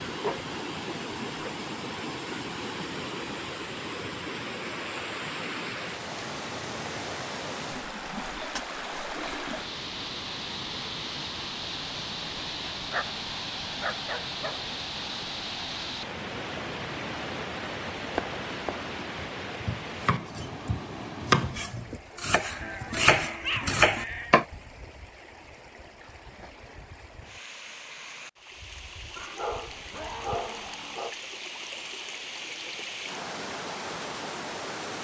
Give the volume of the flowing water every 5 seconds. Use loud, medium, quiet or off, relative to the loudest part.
loud, loud, loud, loud, medium, medium, loud.